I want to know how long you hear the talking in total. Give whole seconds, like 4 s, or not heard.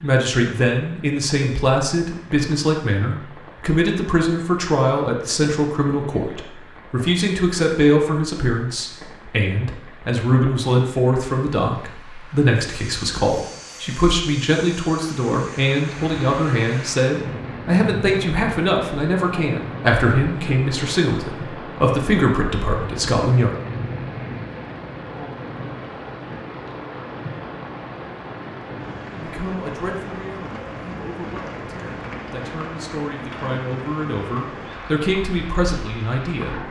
31 s.